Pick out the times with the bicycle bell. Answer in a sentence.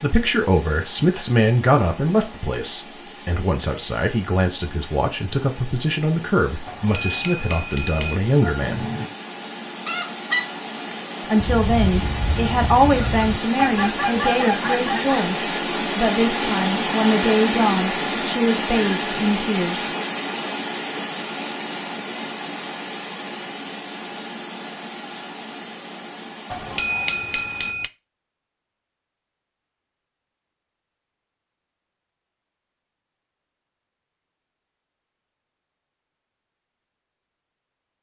You can hear the bicycle bell from 6.7 to 8.2 s and from 26.5 to 27.9 s.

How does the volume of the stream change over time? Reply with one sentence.
The loudness of the stream goes up, then down.